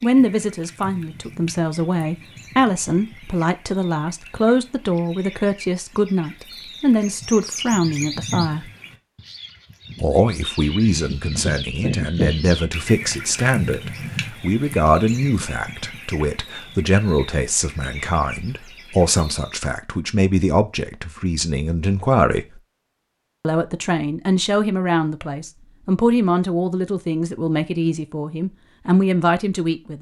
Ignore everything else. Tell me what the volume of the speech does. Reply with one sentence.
The loudness of the speech stays about the same.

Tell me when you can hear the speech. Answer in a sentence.
The speech can be heard from 0.0 to 8.7 s, from 10.0 to 22.6 s and from 23.4 to 29.9 s.